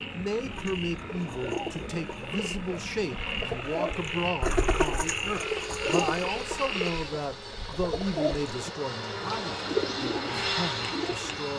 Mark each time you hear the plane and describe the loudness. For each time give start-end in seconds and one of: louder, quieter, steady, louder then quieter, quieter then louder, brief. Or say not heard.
0.0-11.5 louder.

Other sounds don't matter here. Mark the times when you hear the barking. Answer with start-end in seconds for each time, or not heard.
not heard.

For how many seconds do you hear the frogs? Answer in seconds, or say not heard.
7 s.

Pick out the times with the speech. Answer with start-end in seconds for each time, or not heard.
0.1-11.5.